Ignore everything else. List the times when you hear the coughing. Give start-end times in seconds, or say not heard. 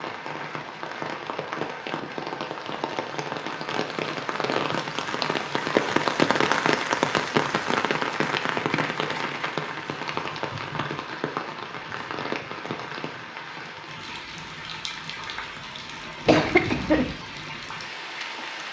16.2-17.1.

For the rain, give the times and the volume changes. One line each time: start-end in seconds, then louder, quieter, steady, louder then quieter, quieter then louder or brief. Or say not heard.
0.0-18.6 louder then quieter.